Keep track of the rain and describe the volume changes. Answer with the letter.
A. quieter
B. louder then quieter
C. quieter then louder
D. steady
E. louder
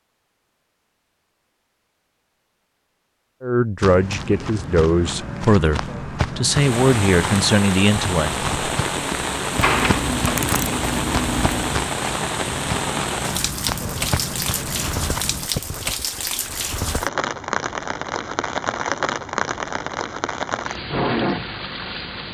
D.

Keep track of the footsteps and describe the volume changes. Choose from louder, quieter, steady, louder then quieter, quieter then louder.
steady.